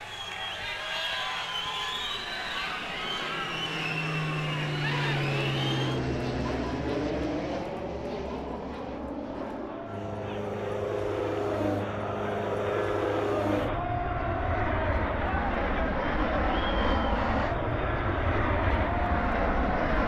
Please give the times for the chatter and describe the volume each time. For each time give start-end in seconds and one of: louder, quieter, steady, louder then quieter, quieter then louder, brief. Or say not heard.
0.0-20.0 quieter then louder.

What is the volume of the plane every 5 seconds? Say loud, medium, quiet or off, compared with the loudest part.
medium, loud, loud, loud.